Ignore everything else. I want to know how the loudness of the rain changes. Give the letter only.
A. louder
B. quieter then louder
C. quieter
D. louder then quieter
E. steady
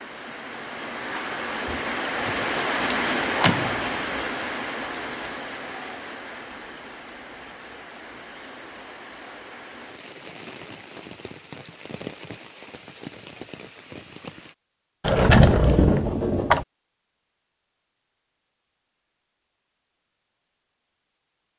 C.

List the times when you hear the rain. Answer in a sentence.
The rain can be heard from 0.0 to 14.6 s.